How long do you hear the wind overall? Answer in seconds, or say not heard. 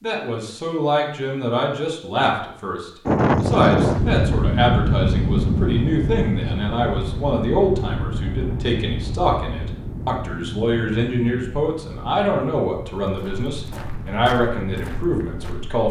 13 s.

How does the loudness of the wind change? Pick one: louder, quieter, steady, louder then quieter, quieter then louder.
quieter.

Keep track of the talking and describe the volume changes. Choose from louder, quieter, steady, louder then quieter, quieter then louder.
steady.